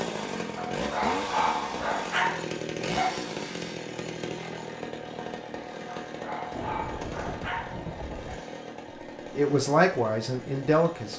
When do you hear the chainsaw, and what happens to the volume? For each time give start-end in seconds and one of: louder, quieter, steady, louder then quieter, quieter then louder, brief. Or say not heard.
0.0-11.1 quieter.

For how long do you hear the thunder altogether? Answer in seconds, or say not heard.
2 s.